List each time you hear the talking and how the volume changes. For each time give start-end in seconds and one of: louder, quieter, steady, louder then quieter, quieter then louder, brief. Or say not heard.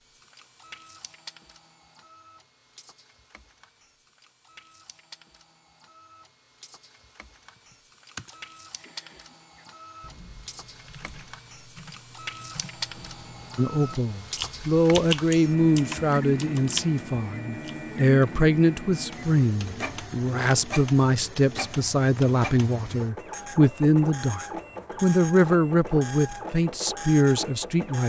13.6-28.0 steady.